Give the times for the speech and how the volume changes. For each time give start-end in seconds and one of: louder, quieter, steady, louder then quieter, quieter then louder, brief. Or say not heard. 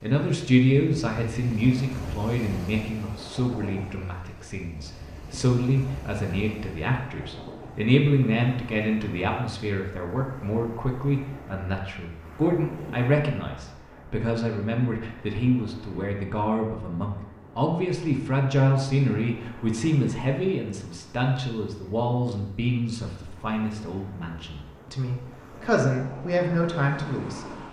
0.0-27.4 steady.